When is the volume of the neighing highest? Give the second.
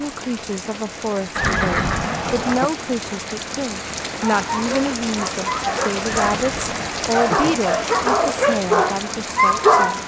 2 s.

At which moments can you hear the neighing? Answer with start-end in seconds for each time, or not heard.
1.4-2.7, 6.0-7.6.